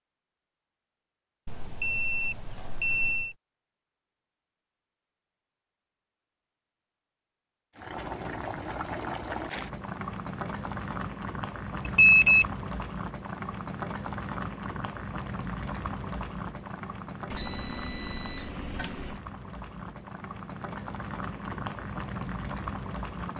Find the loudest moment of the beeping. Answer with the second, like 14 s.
12 s.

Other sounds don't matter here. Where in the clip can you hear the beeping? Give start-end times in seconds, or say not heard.
1.4-3.4, 11.8-12.4, 17.3-19.2.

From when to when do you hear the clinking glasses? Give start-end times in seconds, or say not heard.
not heard.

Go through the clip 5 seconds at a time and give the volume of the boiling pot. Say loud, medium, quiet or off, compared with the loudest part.
off, loud, loud, loud, loud.